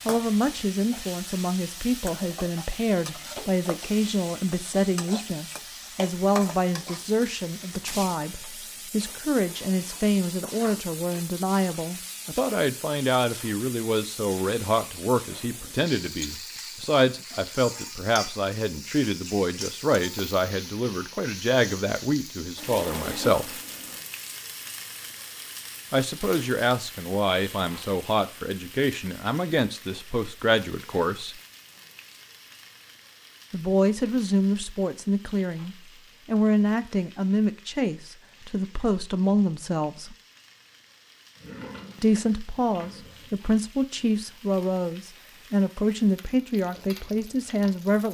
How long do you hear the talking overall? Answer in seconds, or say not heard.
42 s.